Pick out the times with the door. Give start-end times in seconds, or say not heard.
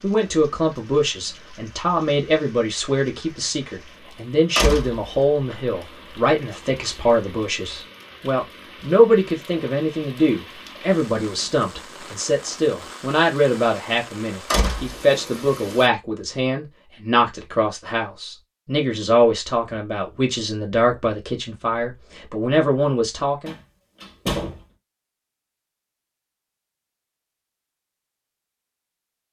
4.5-5.5, 14.5-15.0, 23.4-24.6.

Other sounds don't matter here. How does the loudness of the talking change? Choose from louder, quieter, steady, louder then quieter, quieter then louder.
steady.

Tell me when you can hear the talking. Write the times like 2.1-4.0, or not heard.
0.0-23.6.